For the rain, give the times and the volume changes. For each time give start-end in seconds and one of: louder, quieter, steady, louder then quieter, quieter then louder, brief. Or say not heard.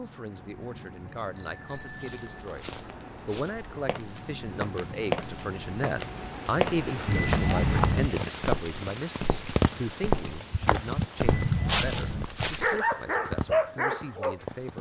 0.0-14.7 louder then quieter.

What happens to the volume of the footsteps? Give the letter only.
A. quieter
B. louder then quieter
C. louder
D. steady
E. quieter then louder
C.